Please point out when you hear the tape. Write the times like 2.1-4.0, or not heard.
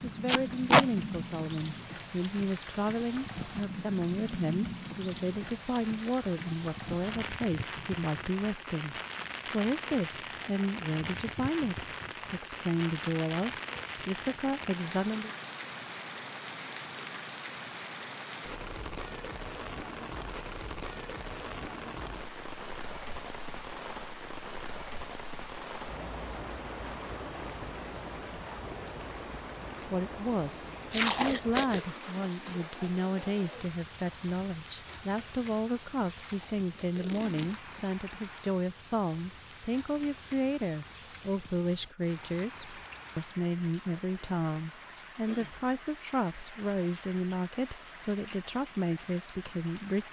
0.2-0.8, 30.9-31.9, 36.1-37.7.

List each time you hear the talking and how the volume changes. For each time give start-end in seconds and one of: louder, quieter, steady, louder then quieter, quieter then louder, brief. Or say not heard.
0.0-15.3 steady
29.9-50.0 steady.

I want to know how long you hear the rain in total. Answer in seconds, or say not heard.
50 s.